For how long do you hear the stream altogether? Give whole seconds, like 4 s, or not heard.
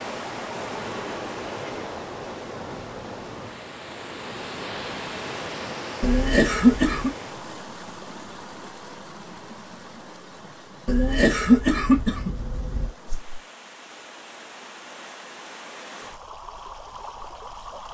18 s.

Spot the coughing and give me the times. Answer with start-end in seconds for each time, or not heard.
6.0-7.1, 10.8-12.9.